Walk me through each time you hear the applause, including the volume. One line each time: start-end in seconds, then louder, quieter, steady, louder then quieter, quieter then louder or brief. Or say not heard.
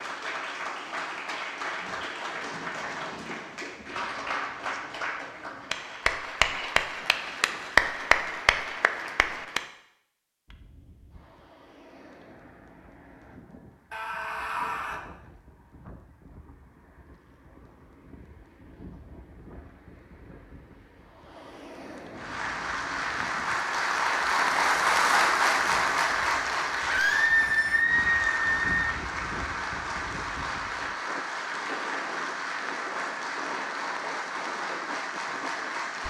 0.0-9.7 louder
22.1-36.0 quieter.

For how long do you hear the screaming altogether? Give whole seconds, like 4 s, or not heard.
3 s.